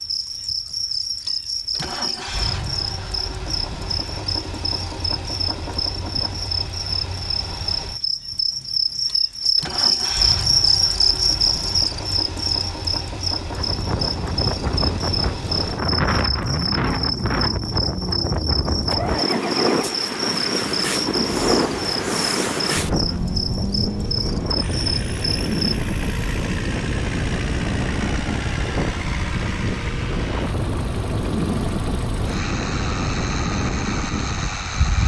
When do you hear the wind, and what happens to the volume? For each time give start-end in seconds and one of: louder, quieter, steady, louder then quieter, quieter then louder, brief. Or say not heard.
13.5-35.0 steady.